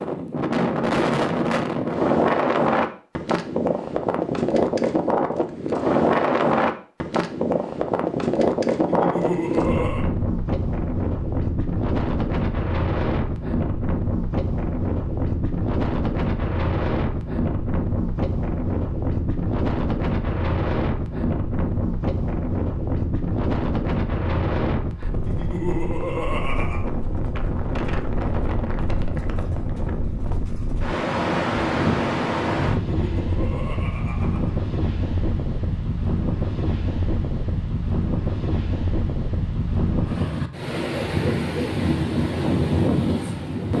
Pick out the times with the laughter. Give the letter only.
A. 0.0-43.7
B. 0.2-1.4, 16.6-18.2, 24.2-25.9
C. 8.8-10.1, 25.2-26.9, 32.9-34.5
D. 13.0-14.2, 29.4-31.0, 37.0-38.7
C.